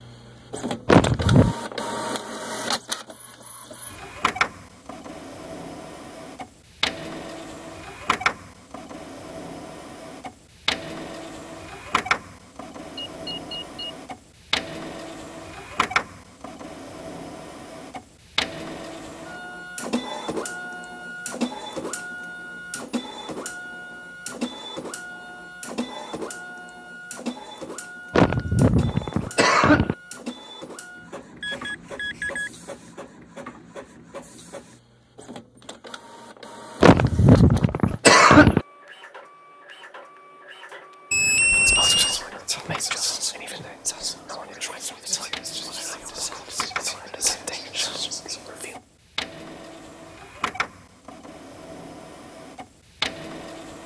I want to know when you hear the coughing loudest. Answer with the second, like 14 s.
38 s.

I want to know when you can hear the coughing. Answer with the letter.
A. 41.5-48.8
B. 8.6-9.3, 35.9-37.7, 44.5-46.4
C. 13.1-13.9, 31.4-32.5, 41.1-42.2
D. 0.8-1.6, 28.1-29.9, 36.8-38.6
D.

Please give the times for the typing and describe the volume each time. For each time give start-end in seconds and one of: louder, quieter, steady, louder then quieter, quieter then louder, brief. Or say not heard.
not heard.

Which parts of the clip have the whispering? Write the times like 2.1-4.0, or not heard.
41.5-48.8.